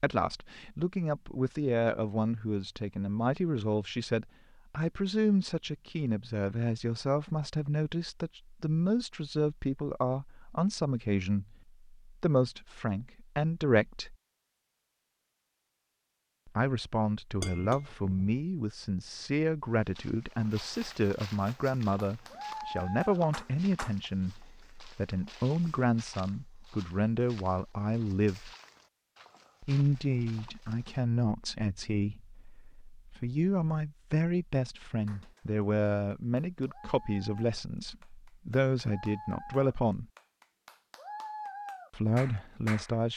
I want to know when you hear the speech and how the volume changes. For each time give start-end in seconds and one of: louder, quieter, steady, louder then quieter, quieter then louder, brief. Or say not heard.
0.0-14.2 steady
16.4-28.5 steady
29.6-40.0 steady
41.9-43.1 brief.